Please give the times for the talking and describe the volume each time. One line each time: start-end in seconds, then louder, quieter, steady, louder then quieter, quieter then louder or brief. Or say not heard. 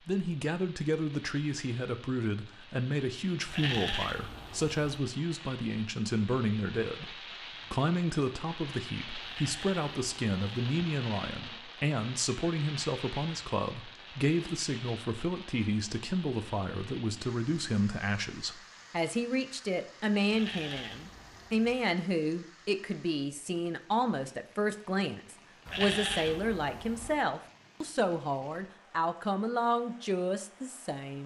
0.0-31.2 steady.